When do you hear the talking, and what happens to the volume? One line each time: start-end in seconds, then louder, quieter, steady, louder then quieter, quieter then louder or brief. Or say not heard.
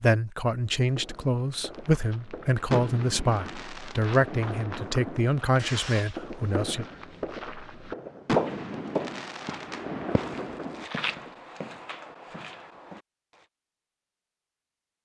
0.0-6.8 steady.